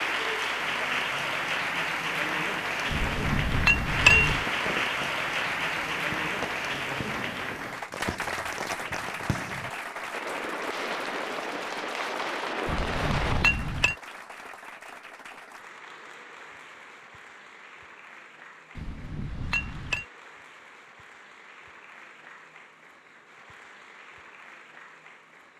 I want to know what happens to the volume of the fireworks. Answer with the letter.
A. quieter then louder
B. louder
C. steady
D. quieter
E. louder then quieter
B.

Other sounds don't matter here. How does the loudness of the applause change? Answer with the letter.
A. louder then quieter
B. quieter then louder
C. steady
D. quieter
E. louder
D.